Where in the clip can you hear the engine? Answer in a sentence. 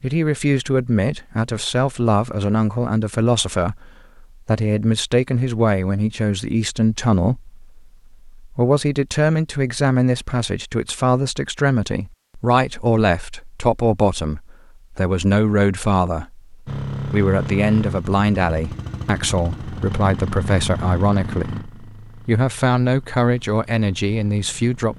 You can hear the engine from 16.6 to 24.9 s.